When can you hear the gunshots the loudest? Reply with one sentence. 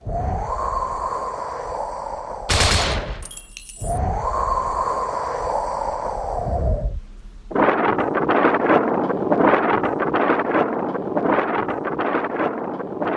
The loudest moment of the gunshots is at 3 seconds.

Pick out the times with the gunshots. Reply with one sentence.
The gunshots can be heard from 2.5 to 4.0 s.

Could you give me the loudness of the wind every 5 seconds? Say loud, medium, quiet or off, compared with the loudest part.
medium, loud, loud.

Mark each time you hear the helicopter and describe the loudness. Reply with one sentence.
The helicopter can't be heard in this clip.